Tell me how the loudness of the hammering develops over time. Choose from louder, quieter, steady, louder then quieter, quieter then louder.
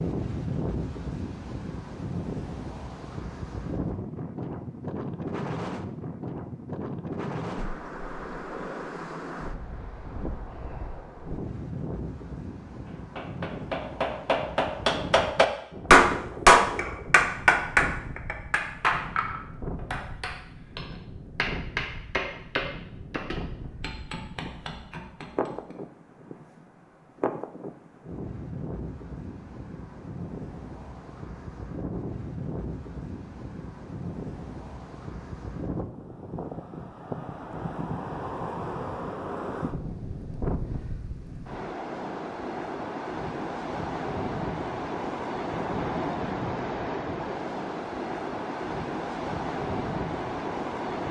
louder then quieter.